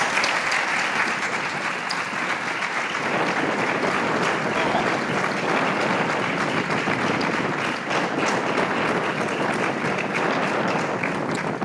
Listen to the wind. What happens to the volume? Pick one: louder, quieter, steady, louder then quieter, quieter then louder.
louder.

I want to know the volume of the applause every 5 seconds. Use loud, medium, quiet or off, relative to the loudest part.
loud, loud, medium.